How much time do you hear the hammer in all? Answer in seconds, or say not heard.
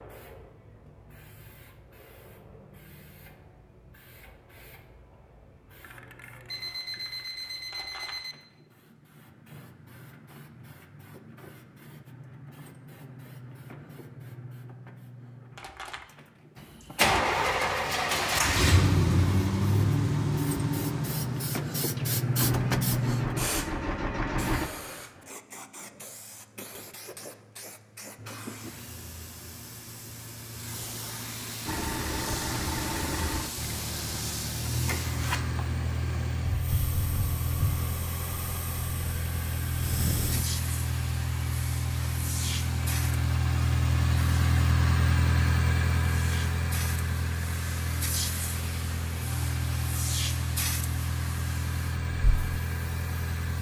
not heard.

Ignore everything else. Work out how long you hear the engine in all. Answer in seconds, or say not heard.
30 s.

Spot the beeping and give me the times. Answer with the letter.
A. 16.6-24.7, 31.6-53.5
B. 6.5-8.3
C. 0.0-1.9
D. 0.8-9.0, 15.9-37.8
B.